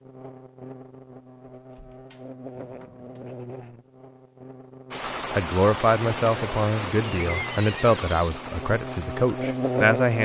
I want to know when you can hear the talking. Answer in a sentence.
You can hear the talking from 5.3 to 10.2 s.